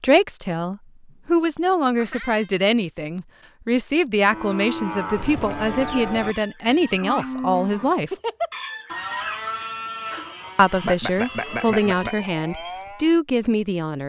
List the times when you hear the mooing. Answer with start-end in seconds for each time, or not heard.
4.3-13.1.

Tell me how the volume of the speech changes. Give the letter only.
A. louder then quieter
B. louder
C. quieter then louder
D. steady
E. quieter
D.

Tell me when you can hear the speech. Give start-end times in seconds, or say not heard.
0.0-8.1, 10.6-14.0.